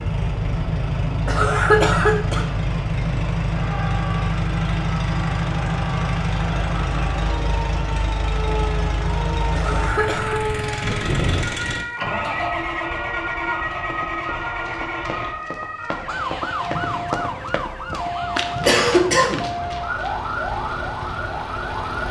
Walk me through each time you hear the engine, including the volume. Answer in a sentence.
You can hear the engine from 0.0 to 22.0 s, getting quieter.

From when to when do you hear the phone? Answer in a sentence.
You can't hear the phone here.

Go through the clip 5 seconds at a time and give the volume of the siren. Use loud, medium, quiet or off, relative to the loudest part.
medium, medium, loud, loud, loud.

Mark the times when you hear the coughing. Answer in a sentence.
The coughing can be heard from 1.2 to 2.5 s, from 9.6 to 10.4 s and from 18.6 to 19.5 s.